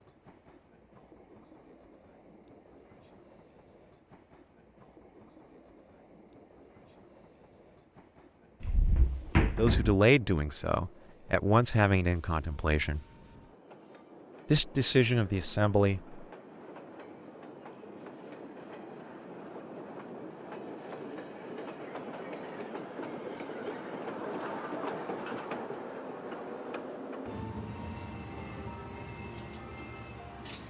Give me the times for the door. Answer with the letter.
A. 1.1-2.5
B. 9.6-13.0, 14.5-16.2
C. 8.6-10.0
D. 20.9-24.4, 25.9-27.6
C.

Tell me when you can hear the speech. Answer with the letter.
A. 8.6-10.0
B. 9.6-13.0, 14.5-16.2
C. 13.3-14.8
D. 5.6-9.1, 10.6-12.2
B.